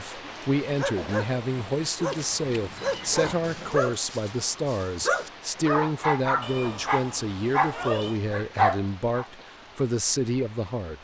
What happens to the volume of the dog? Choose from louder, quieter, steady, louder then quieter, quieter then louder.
louder.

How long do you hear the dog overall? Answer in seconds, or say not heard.
9 s.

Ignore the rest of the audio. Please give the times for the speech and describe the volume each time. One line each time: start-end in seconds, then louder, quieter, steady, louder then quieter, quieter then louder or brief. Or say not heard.
0.0-10.9 steady.